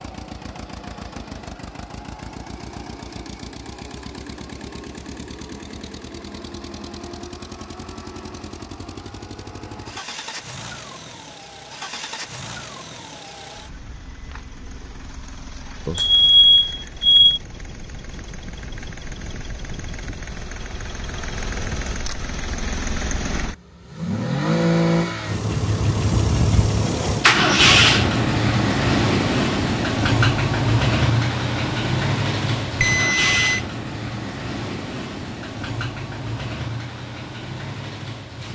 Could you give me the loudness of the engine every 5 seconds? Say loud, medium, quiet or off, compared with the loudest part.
quiet, quiet, quiet, quiet, medium, loud, loud, quiet.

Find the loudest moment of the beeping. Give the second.
16 s.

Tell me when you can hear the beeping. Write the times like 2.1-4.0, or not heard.
15.8-17.4, 32.8-33.6.